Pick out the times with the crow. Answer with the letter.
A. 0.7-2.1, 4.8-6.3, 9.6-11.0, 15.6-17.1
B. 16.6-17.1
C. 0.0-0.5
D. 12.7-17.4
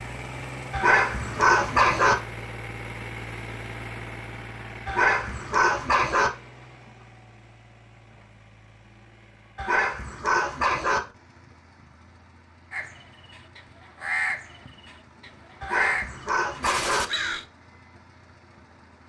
D.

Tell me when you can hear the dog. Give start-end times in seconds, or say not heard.
0.7-2.1, 4.8-6.3, 9.6-11.0, 15.6-17.1.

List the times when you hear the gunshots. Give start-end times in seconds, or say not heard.
16.6-17.1.